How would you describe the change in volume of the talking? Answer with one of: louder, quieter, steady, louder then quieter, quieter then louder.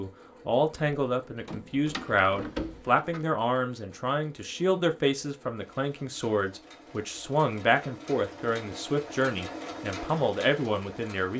steady.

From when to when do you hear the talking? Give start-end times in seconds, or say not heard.
0.0-11.3.